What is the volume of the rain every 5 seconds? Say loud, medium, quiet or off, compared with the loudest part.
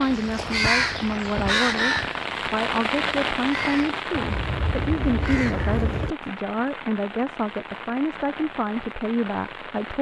loud, medium.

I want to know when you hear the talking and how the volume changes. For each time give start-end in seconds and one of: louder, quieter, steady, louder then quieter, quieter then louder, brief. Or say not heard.
0.0-9.9 steady.